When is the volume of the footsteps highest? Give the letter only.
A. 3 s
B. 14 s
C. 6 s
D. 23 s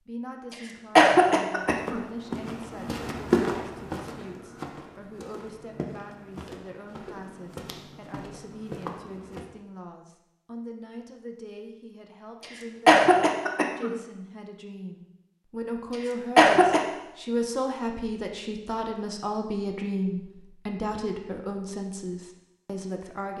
A.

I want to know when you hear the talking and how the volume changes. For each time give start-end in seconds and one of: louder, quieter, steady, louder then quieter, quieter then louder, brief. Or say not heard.
0.1-23.3 louder.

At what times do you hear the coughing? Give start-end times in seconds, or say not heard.
0.9-2.0, 12.8-13.9, 16.4-16.8.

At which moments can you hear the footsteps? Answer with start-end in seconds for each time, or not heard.
1.5-9.4.